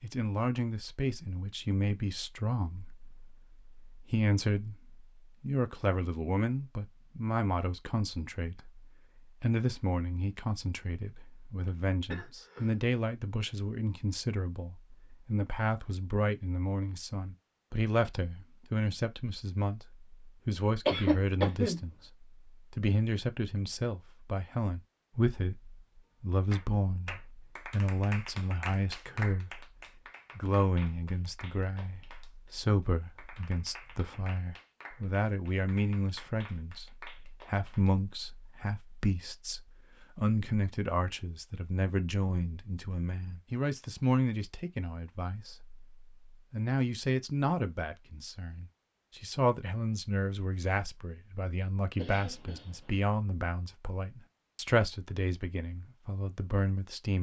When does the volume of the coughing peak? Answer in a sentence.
The loudest moment of the coughing is at 21 seconds.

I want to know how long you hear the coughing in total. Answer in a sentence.
You can hear the coughing for 3 seconds altogether.